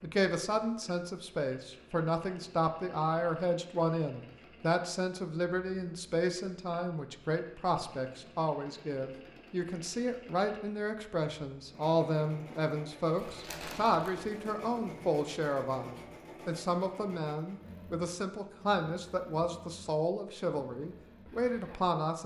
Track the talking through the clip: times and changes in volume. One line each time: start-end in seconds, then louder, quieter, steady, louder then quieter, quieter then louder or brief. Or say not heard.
0.0-22.2 steady.